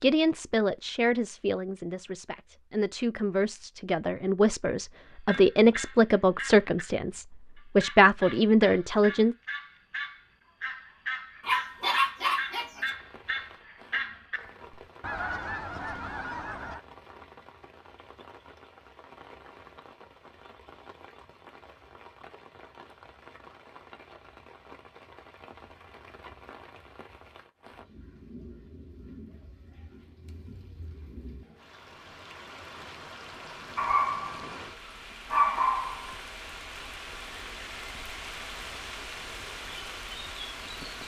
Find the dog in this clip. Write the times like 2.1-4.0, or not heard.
11.4-12.9, 33.8-34.5, 35.2-36.1.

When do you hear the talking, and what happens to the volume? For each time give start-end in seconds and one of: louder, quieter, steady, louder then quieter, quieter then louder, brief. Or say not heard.
0.0-9.3 louder.